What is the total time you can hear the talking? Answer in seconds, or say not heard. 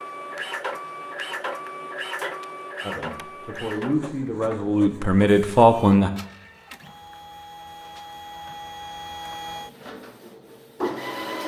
3 s.